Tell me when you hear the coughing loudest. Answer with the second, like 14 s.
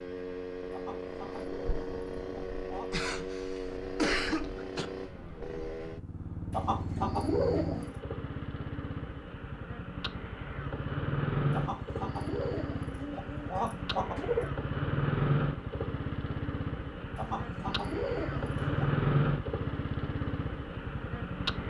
4 s.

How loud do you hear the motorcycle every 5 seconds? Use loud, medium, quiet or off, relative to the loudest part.
medium, medium, loud, loud, medium.